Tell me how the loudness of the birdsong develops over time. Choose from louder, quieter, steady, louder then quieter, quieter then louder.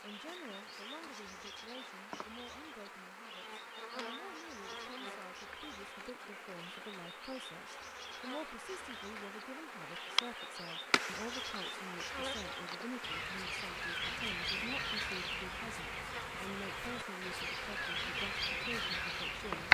louder.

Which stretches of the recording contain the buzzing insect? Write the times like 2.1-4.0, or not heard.
0.0-19.6.